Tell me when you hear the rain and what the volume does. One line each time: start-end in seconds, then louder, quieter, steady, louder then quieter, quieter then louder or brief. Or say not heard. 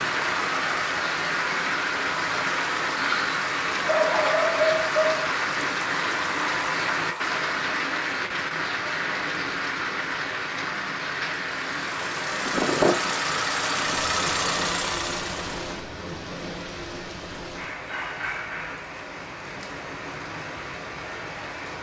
0.0-21.7 quieter.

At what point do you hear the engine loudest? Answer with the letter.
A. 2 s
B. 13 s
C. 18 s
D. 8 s
B.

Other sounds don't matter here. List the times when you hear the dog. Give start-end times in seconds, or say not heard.
3.9-5.2.